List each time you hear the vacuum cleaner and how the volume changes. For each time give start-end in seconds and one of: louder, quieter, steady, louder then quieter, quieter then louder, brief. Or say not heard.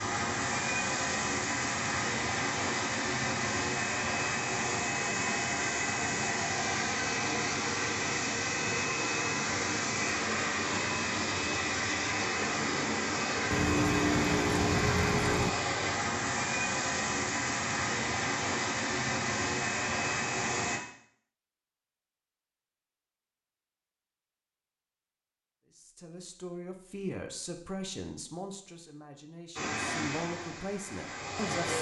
0.0-20.8 steady
29.6-31.7 brief.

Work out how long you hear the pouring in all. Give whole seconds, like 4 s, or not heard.
2 s.